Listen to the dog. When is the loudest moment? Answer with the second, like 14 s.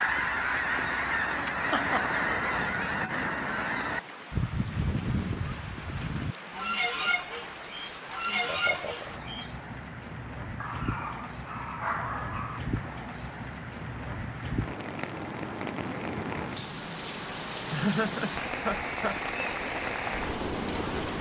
12 s.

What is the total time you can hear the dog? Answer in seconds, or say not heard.
2 s.